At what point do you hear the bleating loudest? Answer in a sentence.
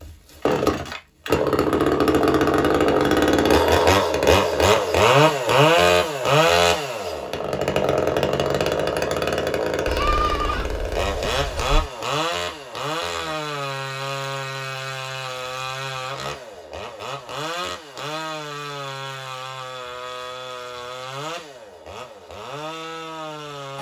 The volume of the bleating peaks at 10 seconds.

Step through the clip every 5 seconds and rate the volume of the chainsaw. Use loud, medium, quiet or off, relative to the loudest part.
loud, loud, medium, quiet, quiet.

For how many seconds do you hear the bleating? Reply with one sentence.
The bleating can be heard for 2 seconds in total.